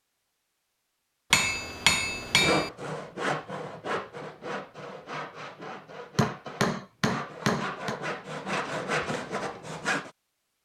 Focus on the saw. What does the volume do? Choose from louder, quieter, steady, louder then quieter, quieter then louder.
quieter then louder.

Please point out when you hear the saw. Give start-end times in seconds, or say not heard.
2.4-10.1.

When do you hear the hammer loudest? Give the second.
2 s.